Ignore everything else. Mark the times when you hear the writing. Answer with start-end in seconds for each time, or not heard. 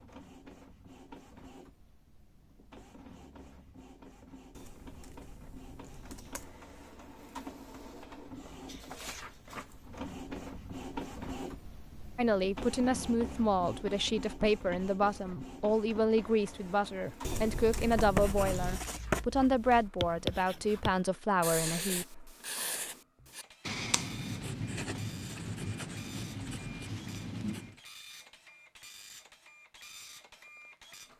17.8-27.8.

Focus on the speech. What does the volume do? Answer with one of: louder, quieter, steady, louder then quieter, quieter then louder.
steady.